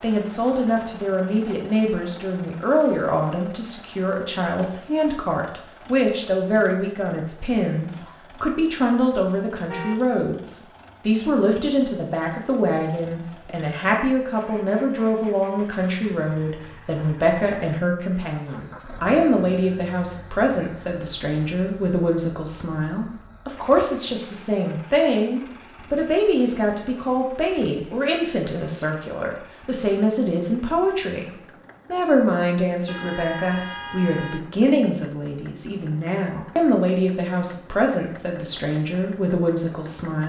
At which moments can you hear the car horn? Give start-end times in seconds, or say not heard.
9.6-10.2, 32.9-34.4.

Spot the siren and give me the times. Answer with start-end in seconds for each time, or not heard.
not heard.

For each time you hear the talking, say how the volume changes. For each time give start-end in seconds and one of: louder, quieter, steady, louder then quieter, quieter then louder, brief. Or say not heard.
0.0-40.2 steady.